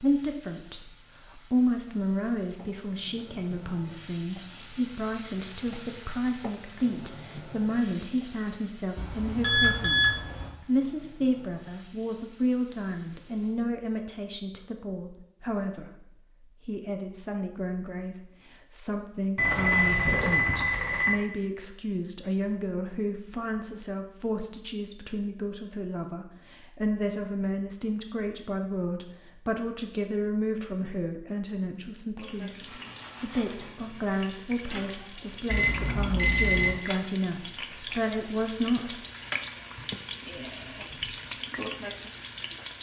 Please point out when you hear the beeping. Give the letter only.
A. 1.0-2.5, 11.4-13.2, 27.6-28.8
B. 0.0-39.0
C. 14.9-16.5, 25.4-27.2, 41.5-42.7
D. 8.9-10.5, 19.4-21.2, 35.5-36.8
D.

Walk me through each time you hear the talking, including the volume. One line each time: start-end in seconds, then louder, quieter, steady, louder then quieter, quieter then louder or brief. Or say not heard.
0.0-39.0 steady.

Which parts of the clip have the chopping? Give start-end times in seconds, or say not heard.
not heard.